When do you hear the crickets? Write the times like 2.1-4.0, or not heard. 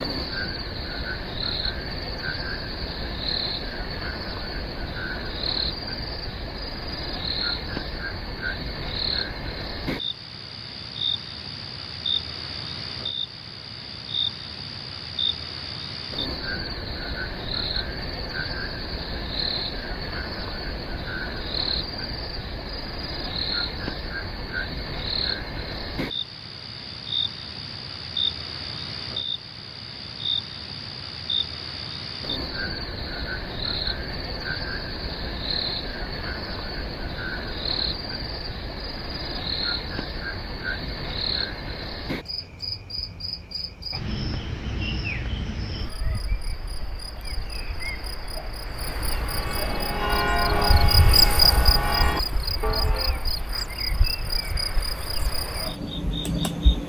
0.0-56.8.